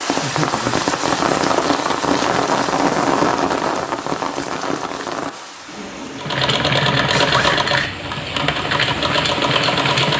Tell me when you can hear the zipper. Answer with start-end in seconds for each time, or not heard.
7.1-7.9.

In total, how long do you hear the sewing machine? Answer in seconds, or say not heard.
4 s.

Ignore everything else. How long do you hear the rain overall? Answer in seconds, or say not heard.
10 s.